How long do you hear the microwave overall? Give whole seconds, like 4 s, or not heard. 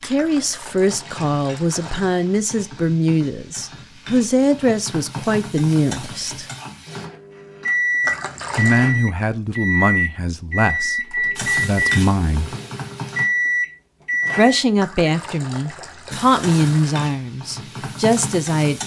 8 s.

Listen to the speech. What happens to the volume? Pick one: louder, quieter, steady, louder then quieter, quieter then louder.
steady.